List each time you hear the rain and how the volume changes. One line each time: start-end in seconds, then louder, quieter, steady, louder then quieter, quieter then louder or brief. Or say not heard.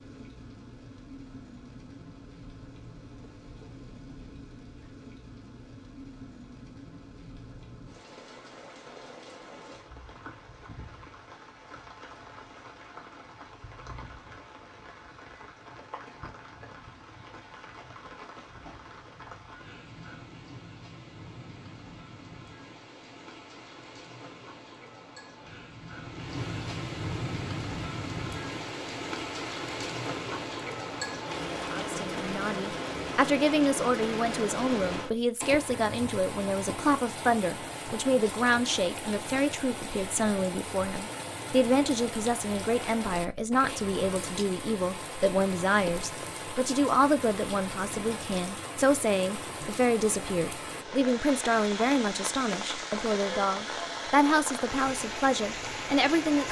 0.0-56.4 louder.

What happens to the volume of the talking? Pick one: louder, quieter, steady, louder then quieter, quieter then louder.
steady.